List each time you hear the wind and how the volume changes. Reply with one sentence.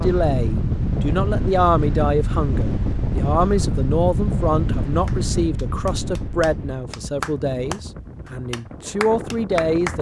The wind can be heard from 0.0 to 9.9 s, getting quieter.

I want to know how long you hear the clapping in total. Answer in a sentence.
You can hear the clapping for 5 seconds altogether.